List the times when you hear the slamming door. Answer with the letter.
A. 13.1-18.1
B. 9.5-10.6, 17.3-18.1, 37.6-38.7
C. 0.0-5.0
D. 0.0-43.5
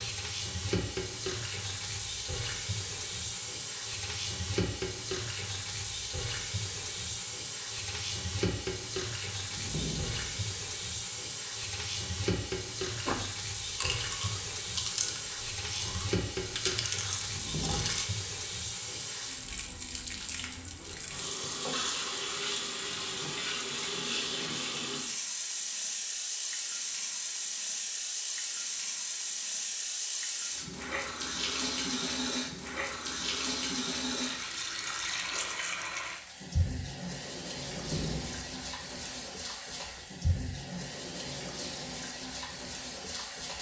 B.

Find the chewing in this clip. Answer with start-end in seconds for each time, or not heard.
13.1-18.1.